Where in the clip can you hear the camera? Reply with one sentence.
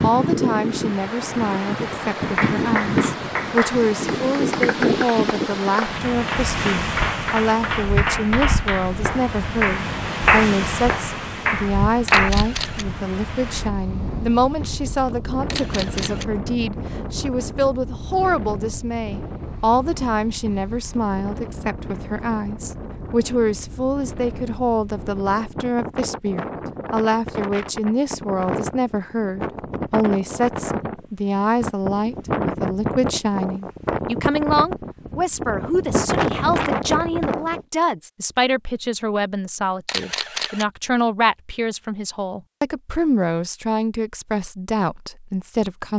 You can hear the camera from 12.1 to 12.8 s, from 15.5 to 16.2 s and from 39.9 to 40.6 s.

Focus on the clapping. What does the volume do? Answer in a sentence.
The loudness of the clapping goes up.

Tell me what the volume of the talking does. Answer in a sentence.
The loudness of the talking stays about the same.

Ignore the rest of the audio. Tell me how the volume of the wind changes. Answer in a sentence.
The volume of the wind goes down, then up.